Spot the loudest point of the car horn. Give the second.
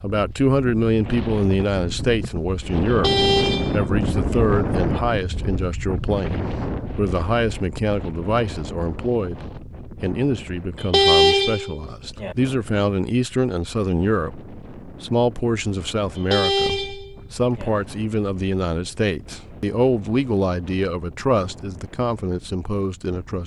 11 s.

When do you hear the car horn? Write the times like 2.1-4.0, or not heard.
2.9-4.5, 10.8-12.3, 16.1-17.7.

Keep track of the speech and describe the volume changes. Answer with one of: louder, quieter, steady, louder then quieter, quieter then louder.
steady.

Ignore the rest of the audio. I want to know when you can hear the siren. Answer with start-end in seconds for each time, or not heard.
not heard.